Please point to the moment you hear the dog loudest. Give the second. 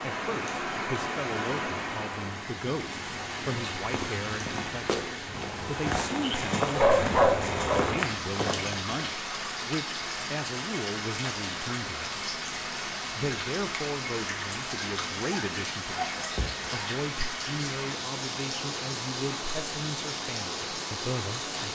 7 s.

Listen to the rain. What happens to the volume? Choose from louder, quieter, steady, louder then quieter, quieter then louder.
steady.